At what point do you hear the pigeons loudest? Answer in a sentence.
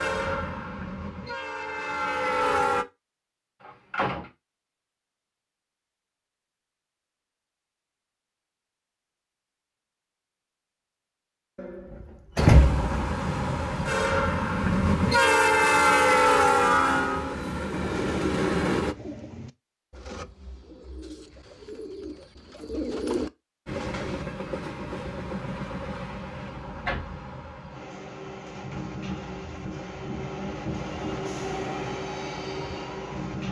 The loudest moment of the pigeons is at 23 seconds.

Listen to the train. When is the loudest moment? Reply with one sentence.
The volume of the train peaks at 16 seconds.